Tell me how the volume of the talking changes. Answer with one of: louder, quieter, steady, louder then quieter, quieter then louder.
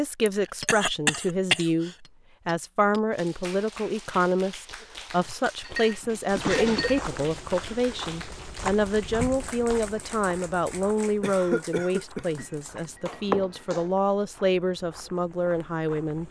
steady.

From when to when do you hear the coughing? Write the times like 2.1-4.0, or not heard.
0.2-1.9, 5.8-6.9, 11.2-12.4.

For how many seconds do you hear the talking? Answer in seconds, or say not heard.
16 s.